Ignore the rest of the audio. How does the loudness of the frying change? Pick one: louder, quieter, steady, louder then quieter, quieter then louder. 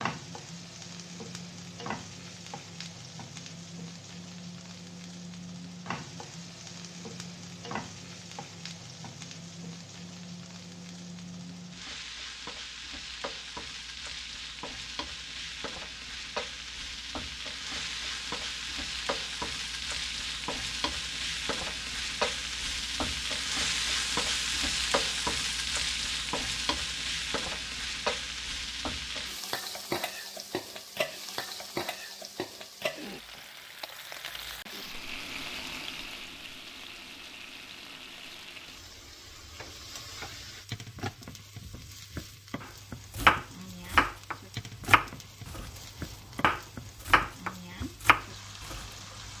louder then quieter.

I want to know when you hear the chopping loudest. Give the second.
43 s.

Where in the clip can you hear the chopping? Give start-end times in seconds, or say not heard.
42.6-48.9.